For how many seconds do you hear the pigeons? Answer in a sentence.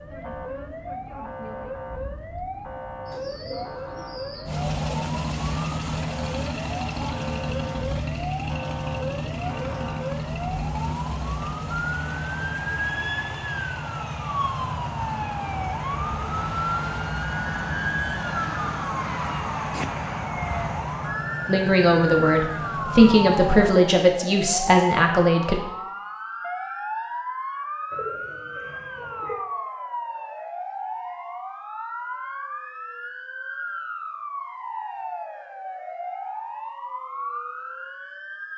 You can hear the pigeons for 3 seconds altogether.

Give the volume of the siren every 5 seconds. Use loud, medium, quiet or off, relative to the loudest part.
medium, medium, loud, loud, loud, loud, medium, medium.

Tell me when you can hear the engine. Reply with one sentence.
The engine can be heard from 4.5 to 23.7 s.